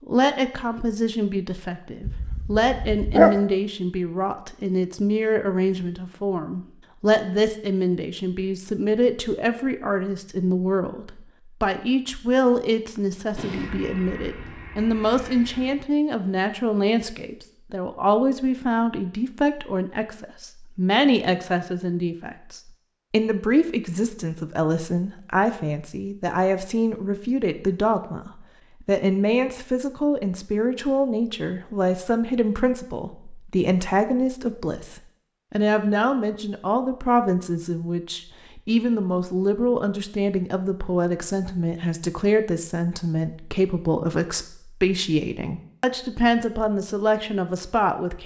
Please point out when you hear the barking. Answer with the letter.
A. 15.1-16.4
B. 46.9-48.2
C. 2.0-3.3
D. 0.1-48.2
C.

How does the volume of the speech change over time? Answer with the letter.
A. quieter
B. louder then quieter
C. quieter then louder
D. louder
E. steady
E.